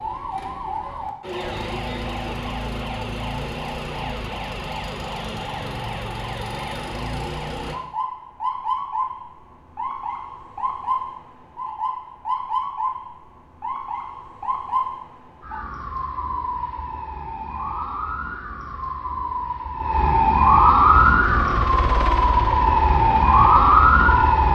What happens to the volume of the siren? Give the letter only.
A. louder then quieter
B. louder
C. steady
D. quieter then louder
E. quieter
B.